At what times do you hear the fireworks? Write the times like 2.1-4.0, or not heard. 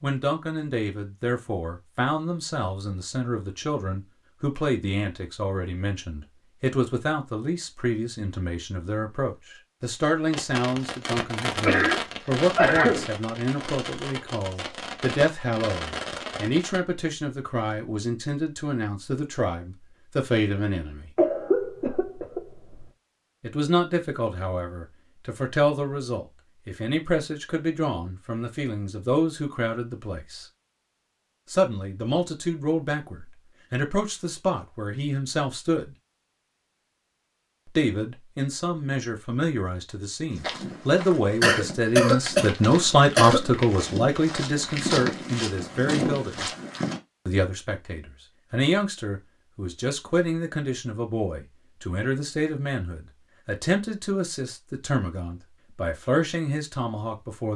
10.3-16.8.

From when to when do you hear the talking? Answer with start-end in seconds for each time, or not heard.
0.0-21.1, 23.4-30.4, 31.5-36.0, 37.6-46.5, 47.2-57.5.